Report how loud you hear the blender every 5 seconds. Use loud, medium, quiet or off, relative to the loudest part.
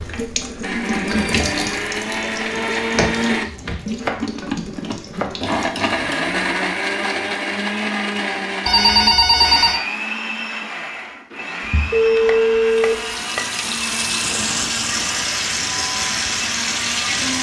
loud, loud, medium, medium.